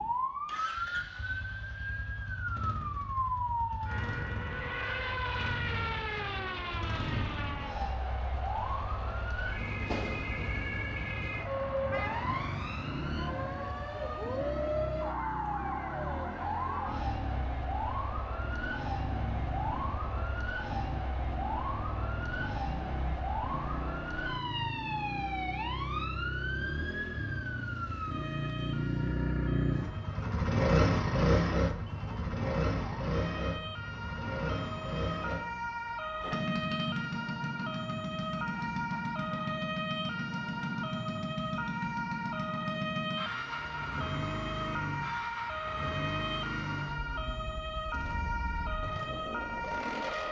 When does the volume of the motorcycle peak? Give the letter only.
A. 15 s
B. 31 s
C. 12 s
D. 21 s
B.